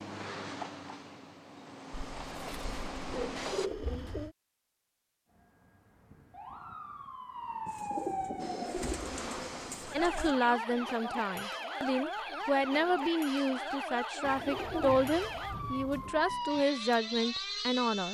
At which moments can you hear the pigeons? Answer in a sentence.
The pigeons can be heard from 1.9 to 4.3 s, from 7.7 to 10.3 s and from 14.2 to 16.1 s.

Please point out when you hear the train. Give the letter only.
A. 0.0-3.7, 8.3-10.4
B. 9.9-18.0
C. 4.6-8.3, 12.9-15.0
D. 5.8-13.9
A.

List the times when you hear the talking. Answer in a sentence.
The talking can be heard from 9.9 to 18.0 s.